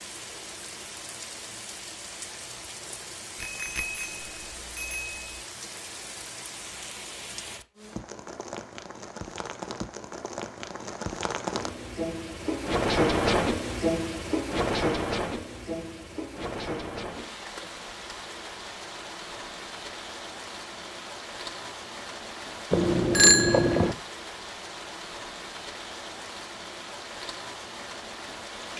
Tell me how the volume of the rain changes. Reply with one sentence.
The loudness of the rain goes up, then down.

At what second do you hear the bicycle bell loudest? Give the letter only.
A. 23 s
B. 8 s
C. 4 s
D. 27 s
A.